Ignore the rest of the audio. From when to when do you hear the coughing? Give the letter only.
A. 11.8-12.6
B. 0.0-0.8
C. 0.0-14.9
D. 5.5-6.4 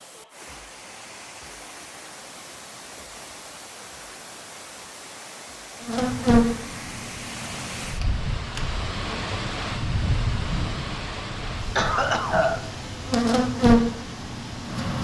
A.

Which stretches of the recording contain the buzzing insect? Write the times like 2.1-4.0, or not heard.
5.8-14.9.